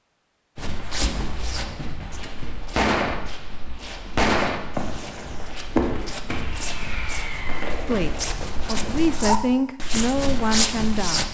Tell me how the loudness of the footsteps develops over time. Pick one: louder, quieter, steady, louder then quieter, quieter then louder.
quieter then louder.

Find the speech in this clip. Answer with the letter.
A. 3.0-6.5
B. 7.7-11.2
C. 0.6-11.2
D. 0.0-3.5
B.